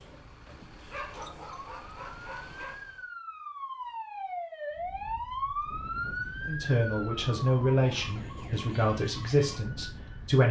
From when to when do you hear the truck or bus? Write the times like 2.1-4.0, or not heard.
0.0-3.1.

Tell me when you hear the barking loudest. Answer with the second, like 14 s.
1 s.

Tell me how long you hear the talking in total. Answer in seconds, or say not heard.
4 s.